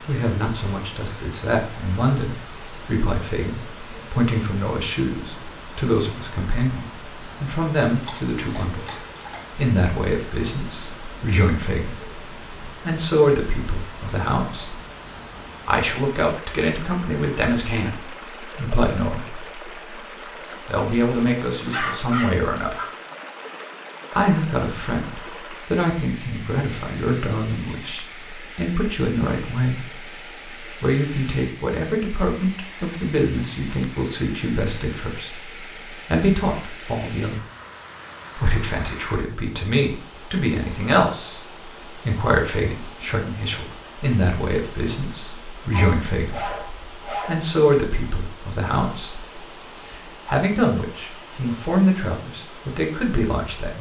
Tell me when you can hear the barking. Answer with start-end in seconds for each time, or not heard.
7.8-9.4, 21.7-22.9, 45.7-47.5.